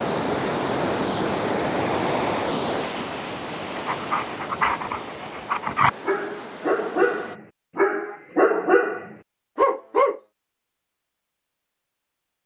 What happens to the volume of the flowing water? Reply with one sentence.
The volume of the flowing water goes down.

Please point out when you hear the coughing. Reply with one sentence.
The coughing can't be heard in this clip.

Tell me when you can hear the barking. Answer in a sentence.
The barking can be heard from 3.8 to 10.2 s.